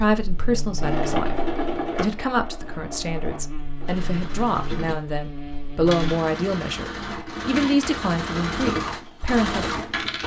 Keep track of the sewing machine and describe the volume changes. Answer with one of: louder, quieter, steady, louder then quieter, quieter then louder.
quieter then louder.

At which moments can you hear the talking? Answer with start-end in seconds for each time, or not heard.
0.0-9.8.